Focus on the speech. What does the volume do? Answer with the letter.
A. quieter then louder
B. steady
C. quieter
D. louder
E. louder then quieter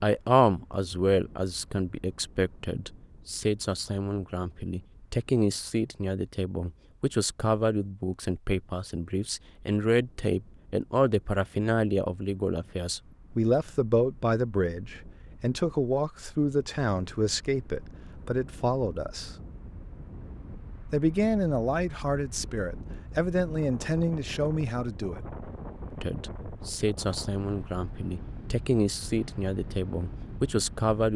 B.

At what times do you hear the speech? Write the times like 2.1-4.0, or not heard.
0.0-19.4, 20.9-25.2, 26.0-31.1.